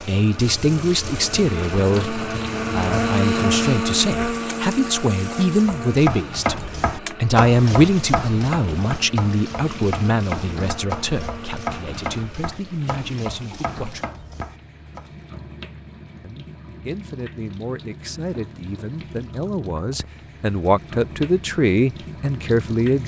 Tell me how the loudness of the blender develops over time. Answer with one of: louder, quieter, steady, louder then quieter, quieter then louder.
louder then quieter.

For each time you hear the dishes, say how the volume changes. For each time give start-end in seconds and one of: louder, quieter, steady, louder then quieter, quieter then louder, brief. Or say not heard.
not heard.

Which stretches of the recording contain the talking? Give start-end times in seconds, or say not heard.
0.0-14.1, 16.2-23.0.